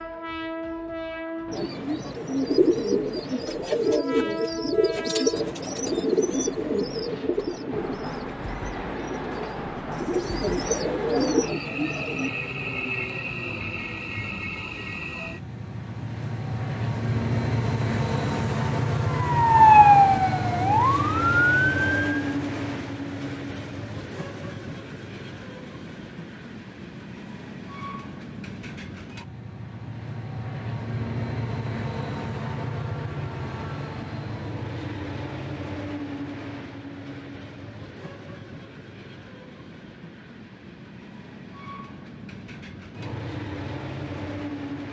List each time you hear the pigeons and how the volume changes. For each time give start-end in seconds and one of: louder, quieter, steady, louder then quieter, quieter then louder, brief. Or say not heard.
1.5-12.3 quieter then louder.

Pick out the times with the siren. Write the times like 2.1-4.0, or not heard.
19.1-22.4.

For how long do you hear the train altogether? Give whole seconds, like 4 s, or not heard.
45 s.